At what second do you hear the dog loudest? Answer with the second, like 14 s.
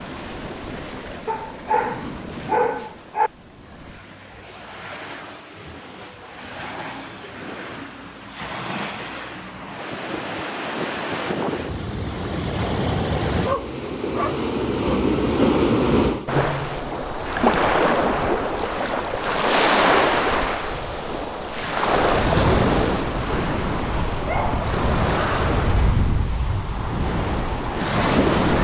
3 s.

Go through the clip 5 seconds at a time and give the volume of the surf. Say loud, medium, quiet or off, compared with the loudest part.
quiet, quiet, medium, loud, loud, loud.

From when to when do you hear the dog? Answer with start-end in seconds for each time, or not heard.
1.2-3.3, 13.4-15.0, 24.2-25.4.